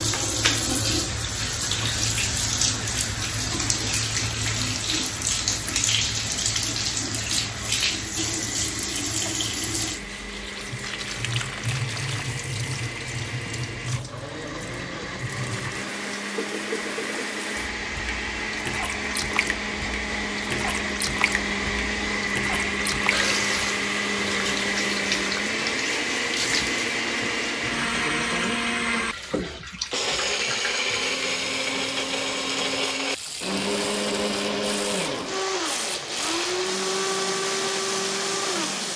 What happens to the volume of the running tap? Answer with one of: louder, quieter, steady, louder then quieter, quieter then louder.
quieter.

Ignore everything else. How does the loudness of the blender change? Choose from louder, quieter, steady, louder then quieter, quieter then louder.
louder.